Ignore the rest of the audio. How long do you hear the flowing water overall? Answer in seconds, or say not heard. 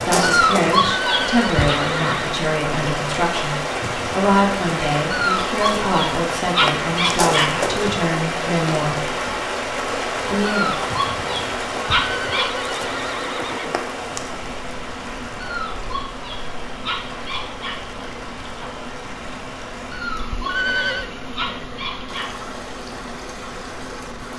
24 s.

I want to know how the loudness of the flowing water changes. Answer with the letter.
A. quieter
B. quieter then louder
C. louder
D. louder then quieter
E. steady
A.